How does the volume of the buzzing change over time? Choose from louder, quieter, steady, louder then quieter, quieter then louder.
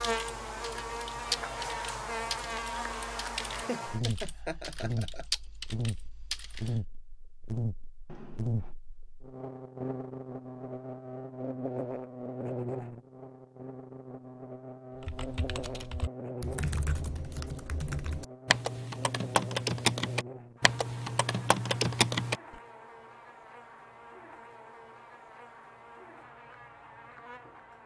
quieter.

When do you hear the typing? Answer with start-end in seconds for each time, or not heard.
0.0-6.8, 15.0-22.4.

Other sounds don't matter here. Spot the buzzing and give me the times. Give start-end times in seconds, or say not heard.
0.0-27.8.